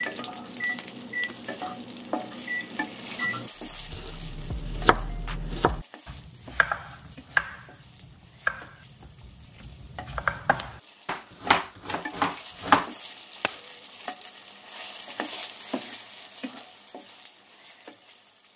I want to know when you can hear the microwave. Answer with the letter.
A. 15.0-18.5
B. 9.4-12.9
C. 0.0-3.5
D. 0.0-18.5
C.